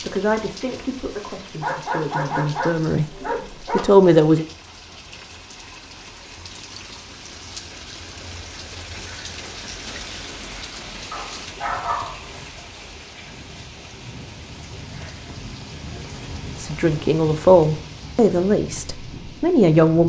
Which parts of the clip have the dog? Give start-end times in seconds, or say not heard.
1.6-4.0, 11.1-12.2.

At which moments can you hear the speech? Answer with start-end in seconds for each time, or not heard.
0.0-4.5, 16.6-20.0.